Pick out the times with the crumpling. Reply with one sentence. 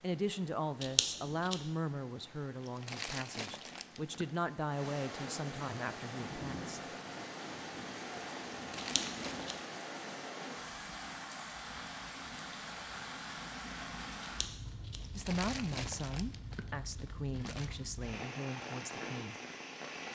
The crumpling can be heard from 2.6 to 4.5 s, from 8.6 to 9.5 s and from 15.0 to 17.7 s.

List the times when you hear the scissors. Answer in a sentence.
You can hear the scissors from 0.8 to 1.6 s, from 8.8 to 9.6 s and from 14.2 to 15.0 s.